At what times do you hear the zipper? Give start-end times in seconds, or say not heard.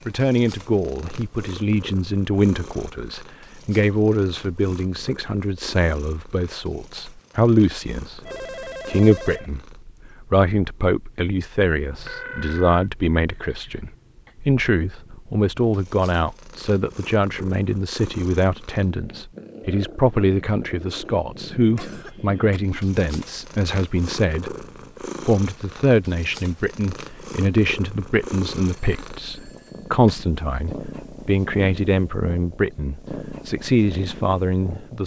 not heard.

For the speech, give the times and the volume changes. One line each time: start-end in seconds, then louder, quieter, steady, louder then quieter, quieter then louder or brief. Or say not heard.
0.1-35.0 steady.